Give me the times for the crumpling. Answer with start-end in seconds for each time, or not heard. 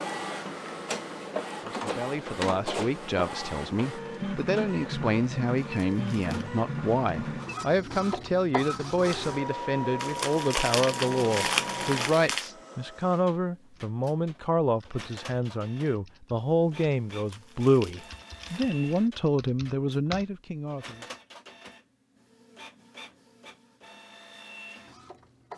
5.6-6.5, 10.0-12.5, 17.1-18.7.